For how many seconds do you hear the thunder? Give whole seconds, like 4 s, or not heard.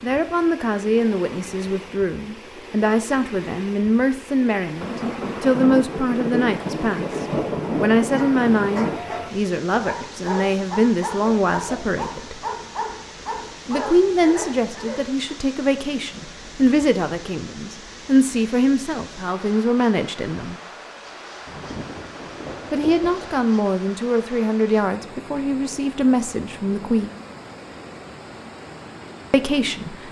6 s.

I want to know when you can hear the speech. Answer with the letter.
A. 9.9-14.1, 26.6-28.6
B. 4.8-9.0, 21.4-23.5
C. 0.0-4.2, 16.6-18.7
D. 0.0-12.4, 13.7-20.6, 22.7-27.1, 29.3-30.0
D.